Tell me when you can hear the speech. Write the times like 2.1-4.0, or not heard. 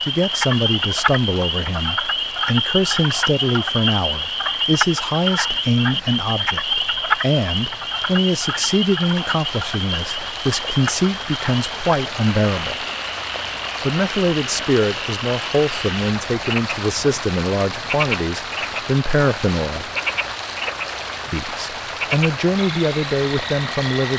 0.0-12.8, 13.8-19.9, 21.3-24.1.